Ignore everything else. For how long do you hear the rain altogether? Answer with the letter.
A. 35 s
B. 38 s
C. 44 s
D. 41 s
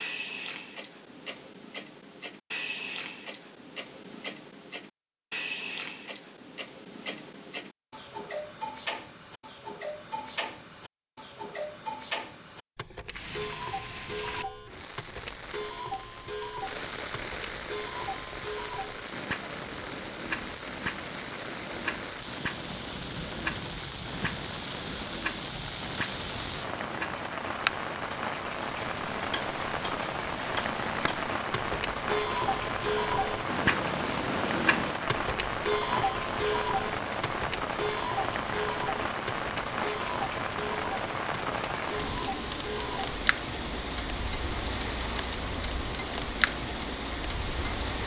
A.